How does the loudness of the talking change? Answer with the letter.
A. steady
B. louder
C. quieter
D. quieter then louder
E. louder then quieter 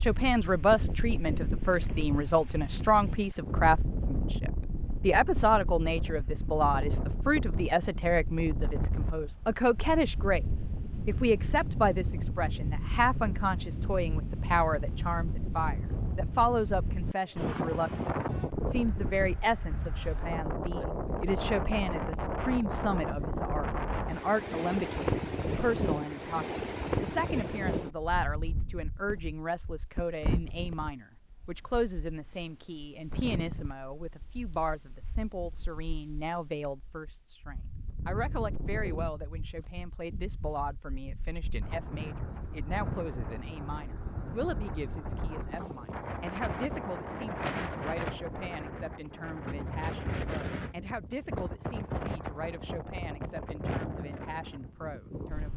C.